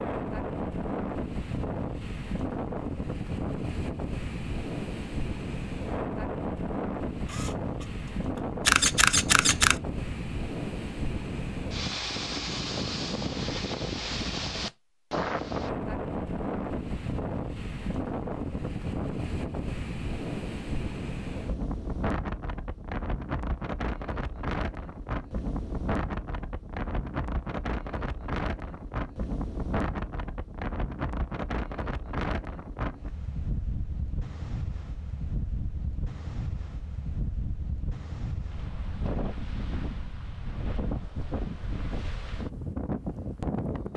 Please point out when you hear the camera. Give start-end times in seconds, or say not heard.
7.2-7.8, 8.7-9.8.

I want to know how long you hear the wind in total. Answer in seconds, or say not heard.
44 s.